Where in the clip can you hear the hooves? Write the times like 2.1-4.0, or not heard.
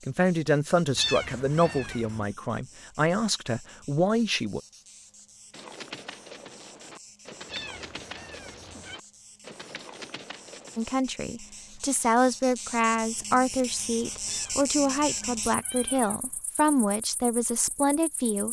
5.5-10.9.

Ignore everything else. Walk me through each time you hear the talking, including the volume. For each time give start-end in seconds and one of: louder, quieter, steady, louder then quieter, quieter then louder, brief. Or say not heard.
0.1-4.6 quieter then louder
10.8-18.4 steady.